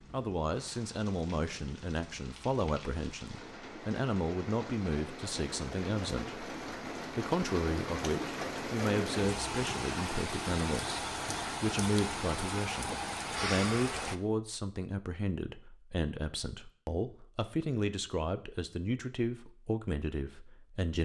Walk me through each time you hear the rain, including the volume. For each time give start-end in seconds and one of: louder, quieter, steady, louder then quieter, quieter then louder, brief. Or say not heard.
0.0-14.2 louder.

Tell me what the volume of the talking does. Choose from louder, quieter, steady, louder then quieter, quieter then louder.
steady.